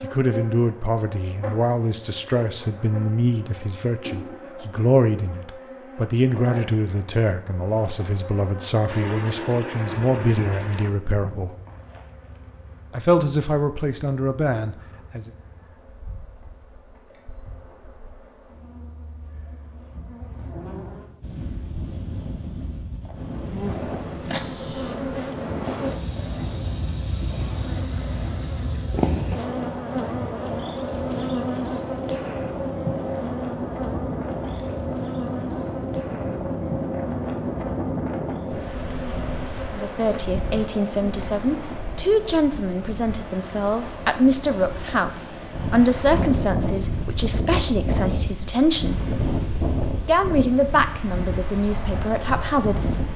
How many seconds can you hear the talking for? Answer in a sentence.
You can hear the talking for 26 seconds altogether.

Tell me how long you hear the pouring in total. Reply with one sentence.
You can hear the pouring for 3 seconds altogether.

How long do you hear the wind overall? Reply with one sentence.
The wind can be heard for 32 seconds in total.